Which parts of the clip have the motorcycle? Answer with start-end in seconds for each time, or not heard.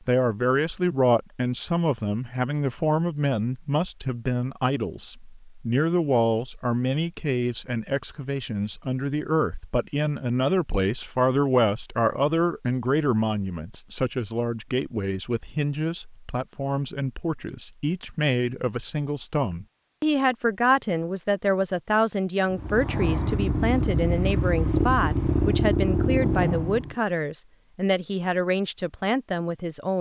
22.5-26.9.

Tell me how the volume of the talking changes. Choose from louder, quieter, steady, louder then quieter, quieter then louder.
steady.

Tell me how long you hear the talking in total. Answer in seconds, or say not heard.
30 s.